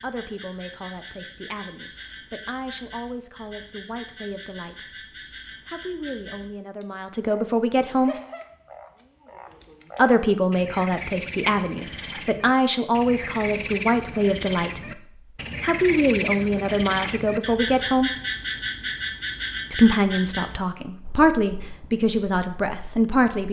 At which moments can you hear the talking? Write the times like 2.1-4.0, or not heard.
0.0-5.0, 5.7-8.2, 9.9-15.0, 15.6-18.1, 19.7-23.4.